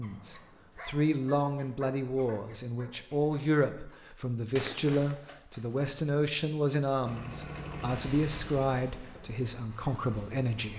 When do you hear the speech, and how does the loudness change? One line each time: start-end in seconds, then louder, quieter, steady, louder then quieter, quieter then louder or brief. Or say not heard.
0.0-10.7 steady.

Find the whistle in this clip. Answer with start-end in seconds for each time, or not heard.
not heard.